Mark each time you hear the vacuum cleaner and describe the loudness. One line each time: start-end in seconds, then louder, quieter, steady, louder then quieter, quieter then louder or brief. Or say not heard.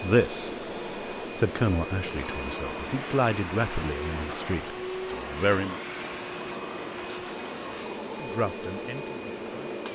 0.0-9.9 steady.